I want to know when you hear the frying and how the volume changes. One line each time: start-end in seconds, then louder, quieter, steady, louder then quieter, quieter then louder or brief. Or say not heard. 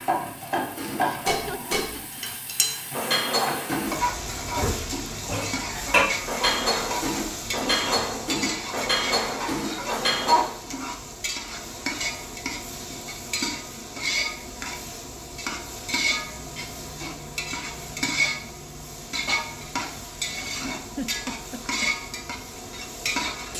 0.0-23.5 steady.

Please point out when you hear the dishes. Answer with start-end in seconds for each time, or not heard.
0.6-10.7.